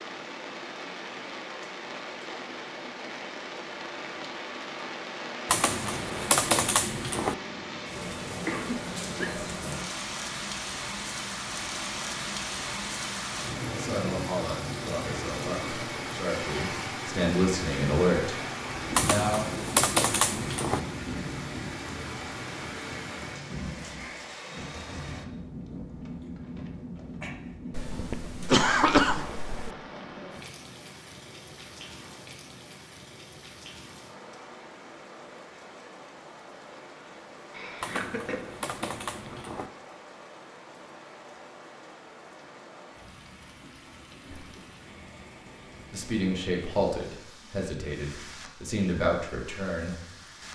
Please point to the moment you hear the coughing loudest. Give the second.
29 s.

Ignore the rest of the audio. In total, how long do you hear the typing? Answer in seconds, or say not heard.
6 s.